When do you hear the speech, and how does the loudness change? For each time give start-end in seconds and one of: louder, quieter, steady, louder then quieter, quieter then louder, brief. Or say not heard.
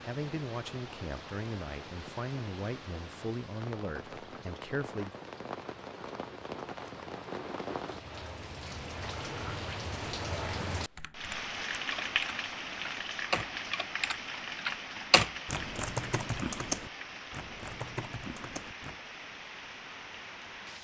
0.0-5.2 steady.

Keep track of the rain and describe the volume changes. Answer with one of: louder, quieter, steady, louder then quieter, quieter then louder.
louder then quieter.